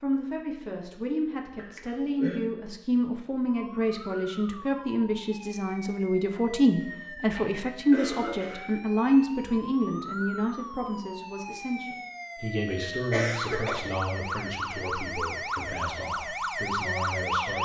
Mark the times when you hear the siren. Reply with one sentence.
You can hear the siren from 3.5 to 17.5 s.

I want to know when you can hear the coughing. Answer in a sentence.
The coughing can be heard from 1.6 to 2.4 s, from 6.8 to 8.7 s and from 13.1 to 13.8 s.